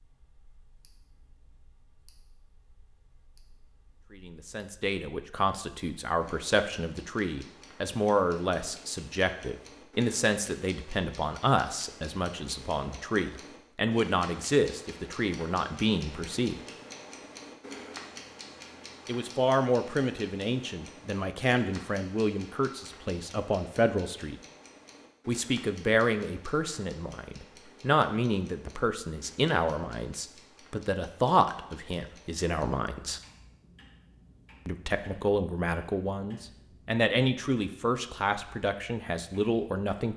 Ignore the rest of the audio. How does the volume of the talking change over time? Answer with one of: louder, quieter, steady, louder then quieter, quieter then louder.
steady.